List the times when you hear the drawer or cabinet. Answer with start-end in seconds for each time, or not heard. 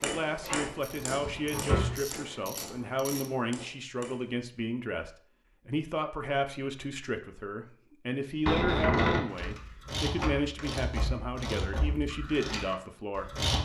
0.4-1.9, 8.4-9.2.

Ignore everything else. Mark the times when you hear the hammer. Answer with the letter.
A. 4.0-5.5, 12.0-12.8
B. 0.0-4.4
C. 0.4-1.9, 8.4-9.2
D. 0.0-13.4
B.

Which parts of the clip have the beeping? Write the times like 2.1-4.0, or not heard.
not heard.